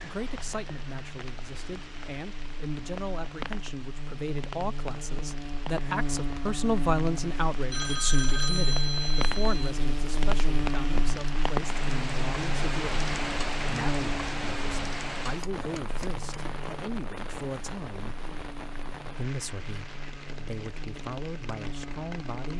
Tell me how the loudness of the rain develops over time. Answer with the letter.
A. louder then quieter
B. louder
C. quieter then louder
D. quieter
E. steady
A.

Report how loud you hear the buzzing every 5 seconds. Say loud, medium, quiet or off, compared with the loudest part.
medium, loud, loud, medium, medium.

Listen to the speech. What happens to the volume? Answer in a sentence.
The loudness of the speech goes up, then down.